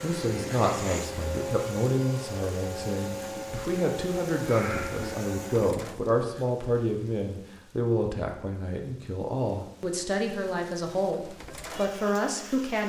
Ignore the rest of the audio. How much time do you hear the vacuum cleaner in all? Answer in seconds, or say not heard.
6 s.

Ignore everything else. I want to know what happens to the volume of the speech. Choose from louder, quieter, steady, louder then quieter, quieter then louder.
steady.